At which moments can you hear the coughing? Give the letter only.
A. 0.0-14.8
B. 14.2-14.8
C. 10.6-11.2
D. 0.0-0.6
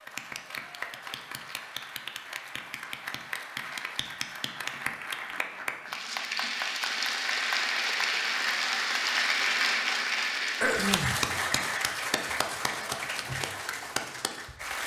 C.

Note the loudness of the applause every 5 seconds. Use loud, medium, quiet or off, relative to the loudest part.
medium, loud, loud.